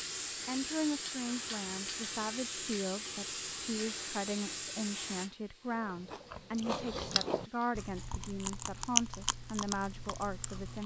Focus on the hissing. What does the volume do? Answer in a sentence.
The loudness of the hissing goes down.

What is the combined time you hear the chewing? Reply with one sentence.
The chewing can be heard for 5 seconds in total.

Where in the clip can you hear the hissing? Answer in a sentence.
You can hear the hissing from 0.0 to 10.8 s.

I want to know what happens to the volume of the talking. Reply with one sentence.
The loudness of the talking stays about the same.